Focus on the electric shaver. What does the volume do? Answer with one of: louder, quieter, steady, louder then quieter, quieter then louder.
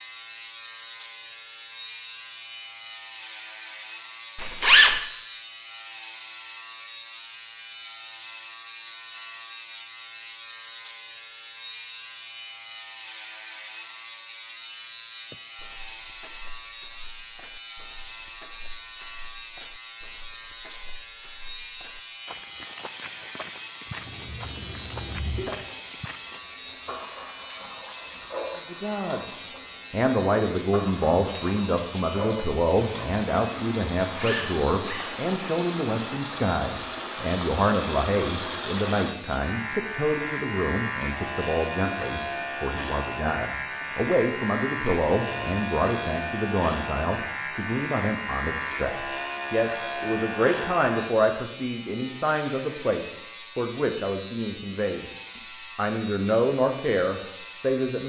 steady.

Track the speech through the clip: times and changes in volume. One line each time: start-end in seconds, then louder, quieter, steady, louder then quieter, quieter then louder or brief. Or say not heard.
28.6-55.0 steady
55.8-58.0 brief.